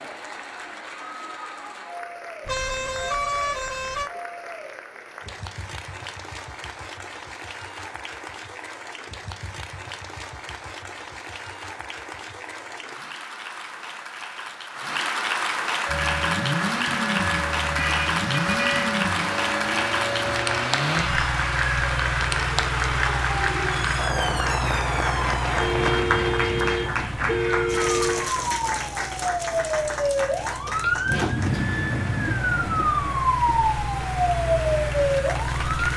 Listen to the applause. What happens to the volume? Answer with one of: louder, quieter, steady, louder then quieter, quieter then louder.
louder then quieter.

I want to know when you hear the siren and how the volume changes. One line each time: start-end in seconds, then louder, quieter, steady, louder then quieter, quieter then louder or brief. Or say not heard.
15.8-35.9 louder.